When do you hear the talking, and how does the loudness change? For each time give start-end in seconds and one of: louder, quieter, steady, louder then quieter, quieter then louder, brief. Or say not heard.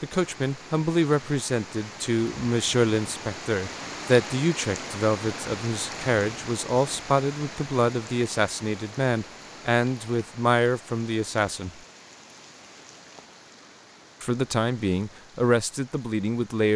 0.0-11.7 steady
14.2-16.7 brief.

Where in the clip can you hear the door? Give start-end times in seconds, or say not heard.
not heard.